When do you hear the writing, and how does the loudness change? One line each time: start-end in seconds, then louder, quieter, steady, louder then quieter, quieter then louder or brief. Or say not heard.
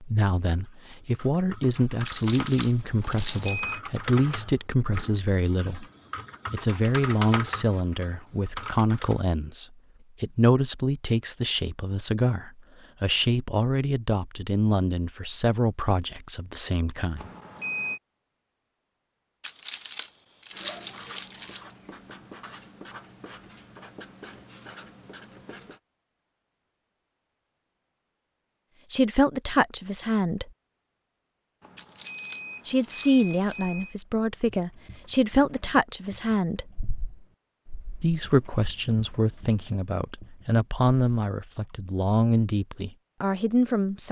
20.5-25.8 steady.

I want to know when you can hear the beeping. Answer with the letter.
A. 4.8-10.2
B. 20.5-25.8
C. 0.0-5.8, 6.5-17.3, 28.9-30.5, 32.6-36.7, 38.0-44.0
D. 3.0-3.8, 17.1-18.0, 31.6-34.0
D.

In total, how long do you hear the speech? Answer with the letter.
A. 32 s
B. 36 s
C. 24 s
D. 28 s
D.